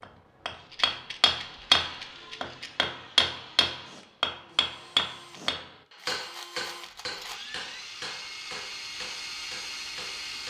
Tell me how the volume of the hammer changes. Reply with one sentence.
The loudness of the hammer goes down.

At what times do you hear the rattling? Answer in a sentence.
The rattling can be heard from 0.7 to 2.7 s and from 6.2 to 7.5 s.